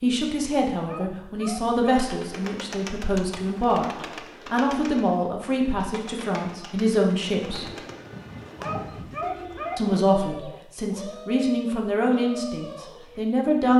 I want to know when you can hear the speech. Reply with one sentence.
The speech can be heard from 0.0 to 7.7 s and from 9.8 to 13.7 s.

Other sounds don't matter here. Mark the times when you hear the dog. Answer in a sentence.
The dog can be heard from 0.8 to 2.1 s and from 8.6 to 9.8 s.